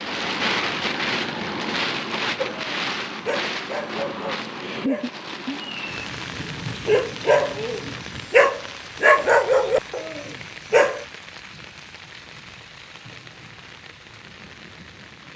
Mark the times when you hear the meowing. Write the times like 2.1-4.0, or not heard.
not heard.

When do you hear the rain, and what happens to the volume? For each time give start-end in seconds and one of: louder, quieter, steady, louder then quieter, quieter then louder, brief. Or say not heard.
0.0-15.3 quieter.